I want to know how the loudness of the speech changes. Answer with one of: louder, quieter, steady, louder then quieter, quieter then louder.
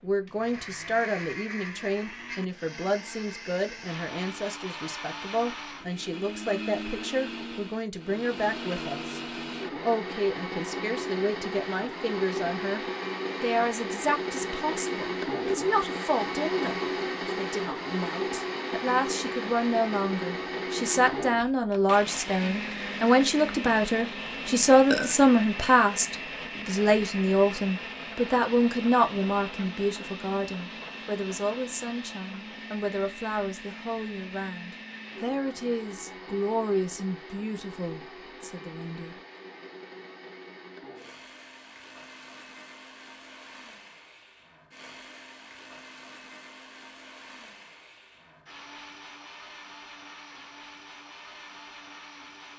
louder then quieter.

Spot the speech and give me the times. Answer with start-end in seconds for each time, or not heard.
0.0-9.2, 9.8-39.1.